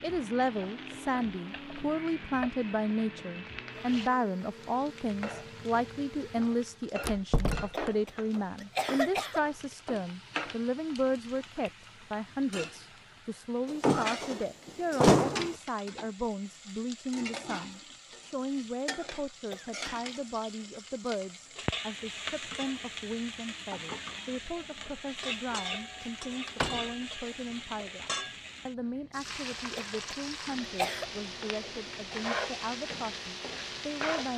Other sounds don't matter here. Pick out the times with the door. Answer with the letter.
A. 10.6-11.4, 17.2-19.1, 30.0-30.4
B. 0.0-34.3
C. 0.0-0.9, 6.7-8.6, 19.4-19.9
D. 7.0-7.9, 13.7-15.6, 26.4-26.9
D.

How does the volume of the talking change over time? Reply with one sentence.
The loudness of the talking goes down.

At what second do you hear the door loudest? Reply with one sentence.
The loudest moment of the door is at 15 seconds.